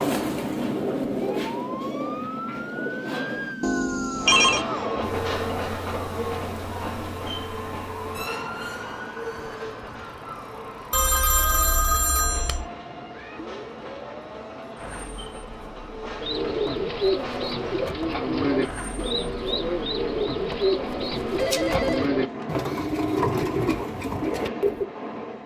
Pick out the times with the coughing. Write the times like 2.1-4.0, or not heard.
not heard.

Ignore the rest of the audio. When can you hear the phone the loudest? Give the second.
4 s.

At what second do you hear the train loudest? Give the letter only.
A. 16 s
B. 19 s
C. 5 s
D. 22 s
C.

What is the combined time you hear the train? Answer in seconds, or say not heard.
21 s.